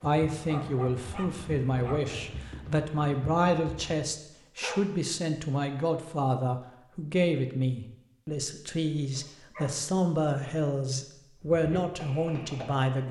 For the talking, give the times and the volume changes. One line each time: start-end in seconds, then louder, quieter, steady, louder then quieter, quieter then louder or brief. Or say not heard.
0.0-13.0 steady.